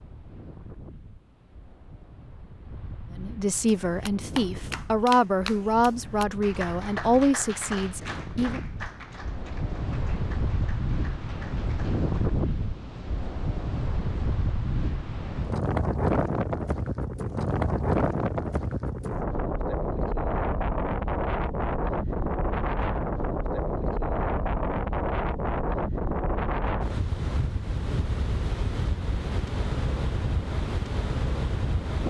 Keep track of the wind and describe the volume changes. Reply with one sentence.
The volume of the wind goes up.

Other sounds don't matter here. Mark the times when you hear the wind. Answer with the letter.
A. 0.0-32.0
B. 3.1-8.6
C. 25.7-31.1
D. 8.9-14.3
A.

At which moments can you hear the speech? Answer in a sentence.
You can hear the speech from 3.1 to 8.6 s.